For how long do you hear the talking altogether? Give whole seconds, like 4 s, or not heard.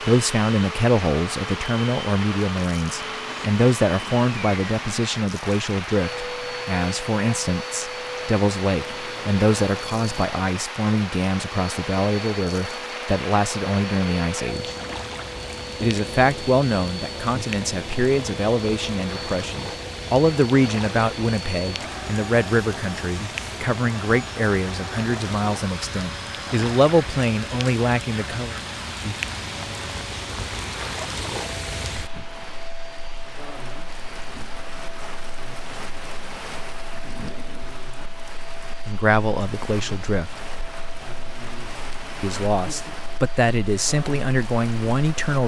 32 s.